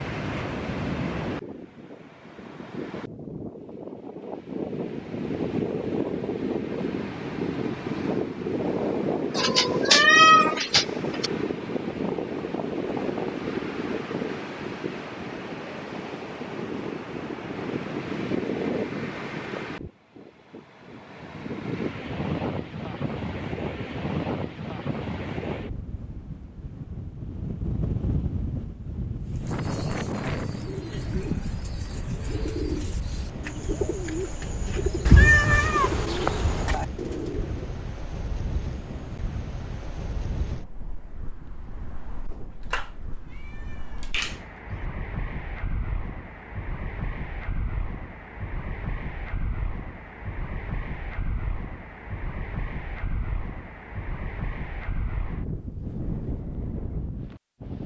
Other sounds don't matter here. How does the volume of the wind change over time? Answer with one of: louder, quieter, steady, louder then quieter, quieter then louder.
quieter.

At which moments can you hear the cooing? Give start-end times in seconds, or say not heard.
29.2-37.9.